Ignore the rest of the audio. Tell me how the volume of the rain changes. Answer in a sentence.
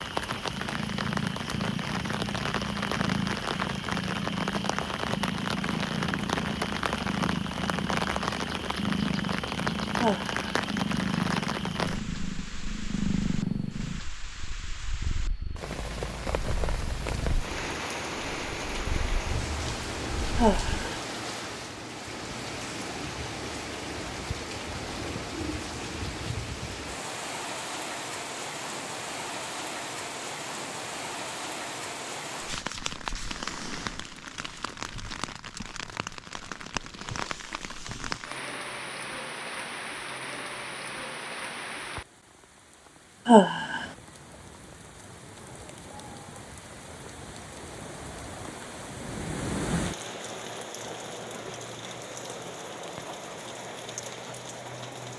The loudness of the rain goes down.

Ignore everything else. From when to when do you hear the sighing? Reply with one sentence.
You can hear the sighing from 9.9 to 10.4 s, from 20.4 to 20.9 s and from 43.2 to 43.9 s.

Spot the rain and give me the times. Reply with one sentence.
You can hear the rain from 0.0 to 55.1 s.